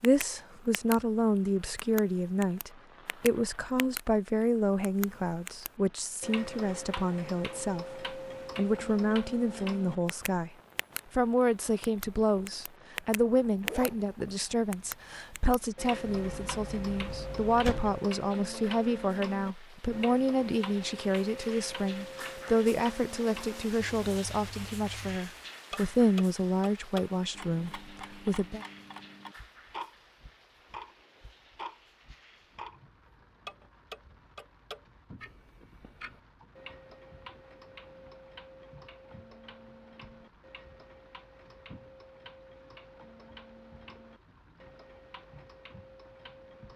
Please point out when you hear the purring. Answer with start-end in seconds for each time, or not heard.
not heard.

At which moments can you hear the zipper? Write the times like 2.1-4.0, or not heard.
13.6-14.3.